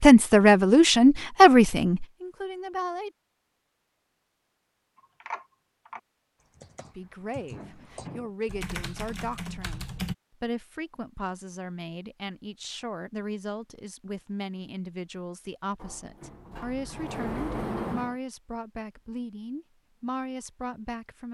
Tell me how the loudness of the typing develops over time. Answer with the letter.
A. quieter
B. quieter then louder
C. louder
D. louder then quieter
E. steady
B.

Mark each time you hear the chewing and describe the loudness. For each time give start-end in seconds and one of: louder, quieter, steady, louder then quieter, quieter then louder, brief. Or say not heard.
not heard.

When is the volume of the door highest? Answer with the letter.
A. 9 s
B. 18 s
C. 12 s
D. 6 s
B.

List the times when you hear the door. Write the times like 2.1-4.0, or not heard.
7.5-8.3, 15.8-18.1.